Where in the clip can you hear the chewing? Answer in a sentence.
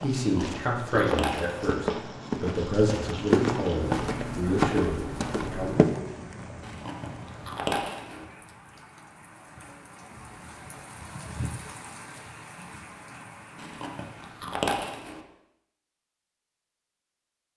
You can hear the chewing from 0.1 to 1.8 s, from 6.6 to 8.2 s and from 13.6 to 15.2 s.